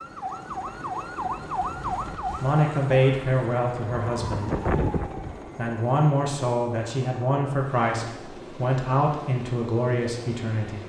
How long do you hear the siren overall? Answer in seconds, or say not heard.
6 s.